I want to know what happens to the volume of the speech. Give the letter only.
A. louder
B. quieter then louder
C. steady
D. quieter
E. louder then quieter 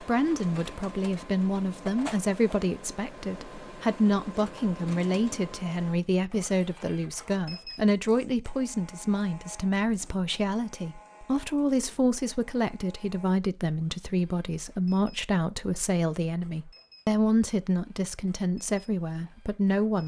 C.